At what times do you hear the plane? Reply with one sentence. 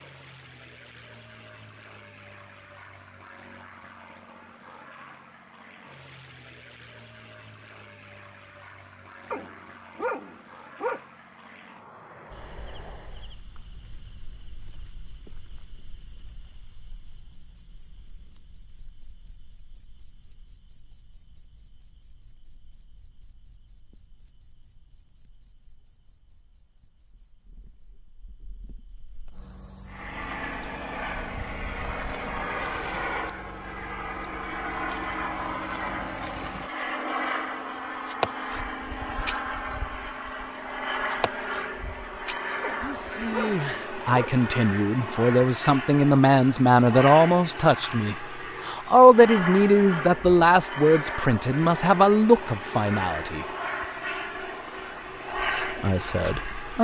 The plane can be heard from 0.0 to 13.4 s and from 29.9 to 56.7 s.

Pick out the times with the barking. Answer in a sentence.
The barking can be heard from 9.3 to 11.0 s and from 42.6 to 44.4 s.